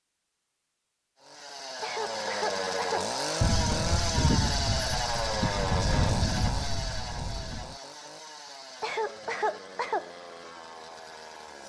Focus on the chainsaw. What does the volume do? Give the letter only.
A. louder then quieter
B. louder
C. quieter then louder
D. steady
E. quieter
E.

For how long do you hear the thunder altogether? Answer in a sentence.
The thunder can be heard for 4 seconds in total.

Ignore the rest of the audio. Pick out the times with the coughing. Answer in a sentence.
You can hear the coughing from 1.8 to 3.1 s and from 8.8 to 10.1 s.